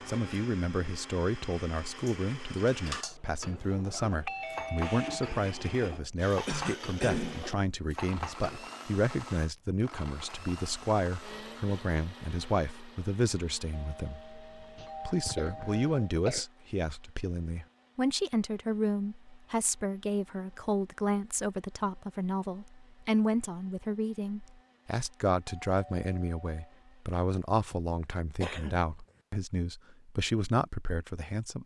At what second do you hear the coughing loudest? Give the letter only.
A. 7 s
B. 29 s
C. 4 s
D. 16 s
A.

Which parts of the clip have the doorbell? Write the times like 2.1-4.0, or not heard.
3.9-5.3, 13.7-15.9, 25.4-26.8.